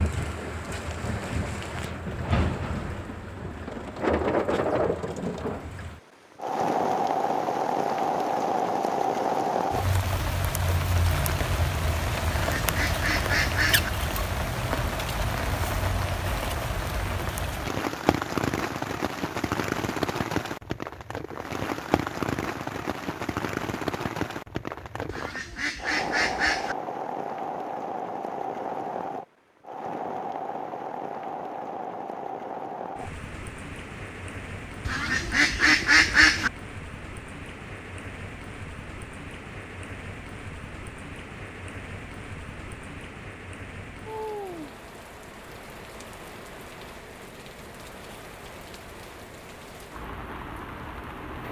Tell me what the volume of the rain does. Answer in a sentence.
The volume of the rain goes down.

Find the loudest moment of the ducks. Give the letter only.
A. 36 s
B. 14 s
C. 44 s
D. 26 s
A.